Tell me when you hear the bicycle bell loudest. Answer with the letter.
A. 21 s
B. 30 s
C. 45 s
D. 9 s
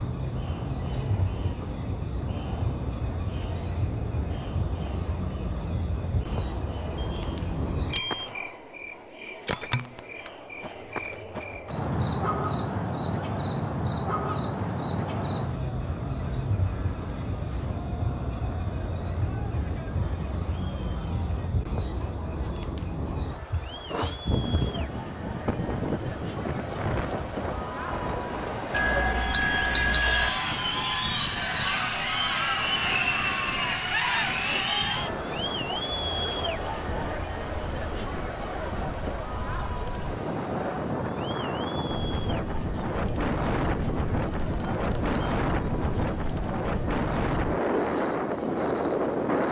B.